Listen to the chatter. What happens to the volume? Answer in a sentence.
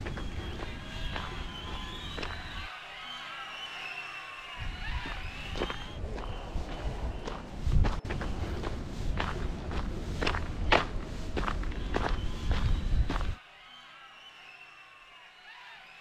The loudness of the chatter goes down.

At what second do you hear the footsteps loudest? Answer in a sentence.
The loudest moment of the footsteps is at 11 seconds.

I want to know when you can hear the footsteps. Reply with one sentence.
The footsteps can be heard from 0.0 to 2.7 s and from 4.5 to 13.3 s.